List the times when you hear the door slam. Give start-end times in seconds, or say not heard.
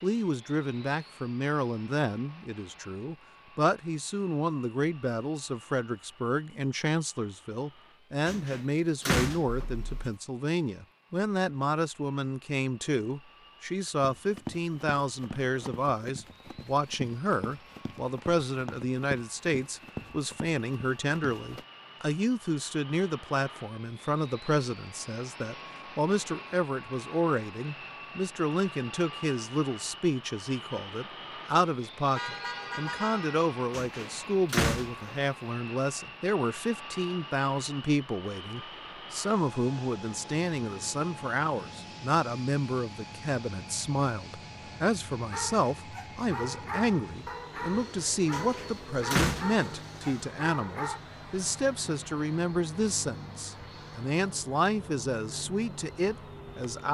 8.2-9.7, 33.7-35.1, 48.3-49.8.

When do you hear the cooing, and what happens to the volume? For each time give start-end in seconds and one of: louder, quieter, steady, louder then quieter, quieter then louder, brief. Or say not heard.
not heard.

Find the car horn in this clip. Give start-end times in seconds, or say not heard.
9.6-10.1, 32.1-33.4.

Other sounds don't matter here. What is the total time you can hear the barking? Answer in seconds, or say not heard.
6 s.